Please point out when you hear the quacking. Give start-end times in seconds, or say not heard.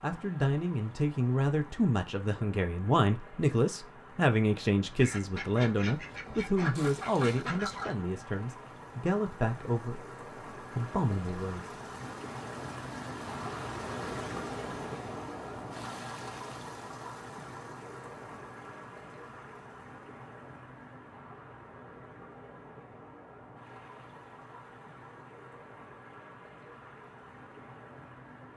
5.0-8.0.